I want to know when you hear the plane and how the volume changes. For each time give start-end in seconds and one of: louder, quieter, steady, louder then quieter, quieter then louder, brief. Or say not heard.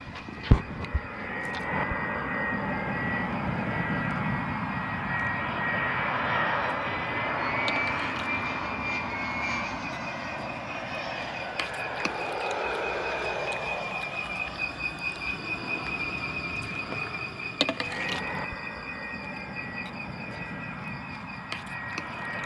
0.0-22.4 quieter.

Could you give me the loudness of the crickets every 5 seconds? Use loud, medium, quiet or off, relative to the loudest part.
quiet, medium, loud, loud, medium.